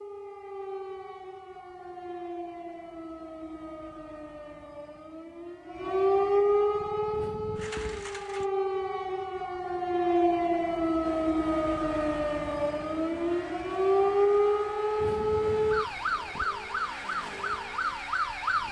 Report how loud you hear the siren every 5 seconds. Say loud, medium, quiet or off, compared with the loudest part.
quiet, loud, loud, loud.